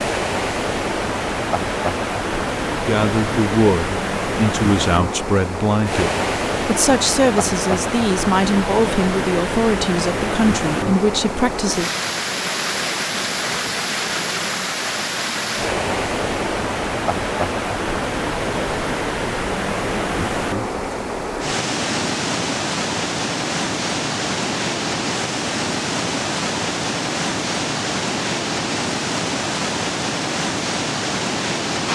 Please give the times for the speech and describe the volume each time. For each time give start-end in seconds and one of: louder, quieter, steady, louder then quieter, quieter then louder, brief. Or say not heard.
2.8-11.9 steady.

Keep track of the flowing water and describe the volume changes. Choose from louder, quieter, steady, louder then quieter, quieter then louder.
steady.